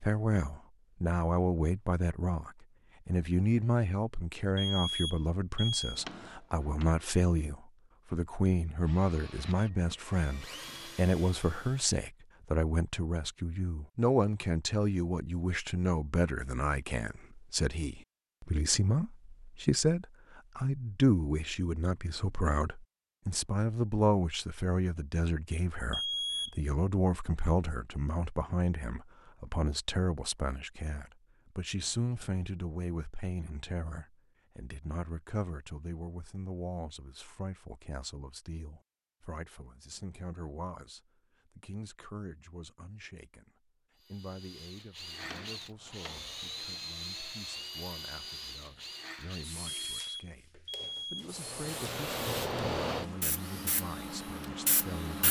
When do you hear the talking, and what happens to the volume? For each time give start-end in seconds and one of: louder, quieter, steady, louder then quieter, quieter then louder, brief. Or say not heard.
0.0-55.2 quieter.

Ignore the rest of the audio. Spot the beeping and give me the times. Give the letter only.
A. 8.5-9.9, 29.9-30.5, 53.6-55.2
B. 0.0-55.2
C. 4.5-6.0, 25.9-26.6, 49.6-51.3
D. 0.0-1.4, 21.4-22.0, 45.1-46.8
C.